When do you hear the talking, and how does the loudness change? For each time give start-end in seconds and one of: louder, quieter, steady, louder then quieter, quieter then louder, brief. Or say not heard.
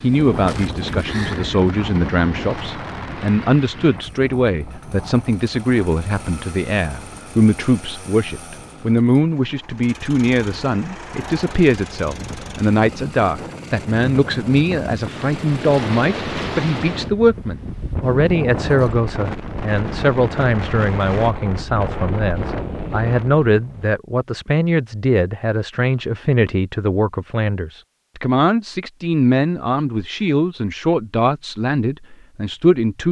0.0-33.0 steady.